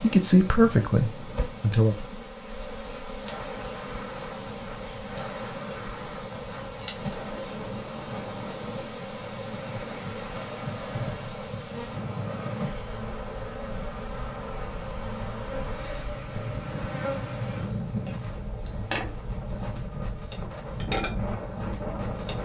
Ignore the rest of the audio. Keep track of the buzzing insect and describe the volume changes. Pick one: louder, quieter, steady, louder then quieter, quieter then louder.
steady.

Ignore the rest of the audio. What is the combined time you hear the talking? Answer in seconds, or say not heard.
2 s.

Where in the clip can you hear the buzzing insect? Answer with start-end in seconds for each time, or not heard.
0.0-22.4.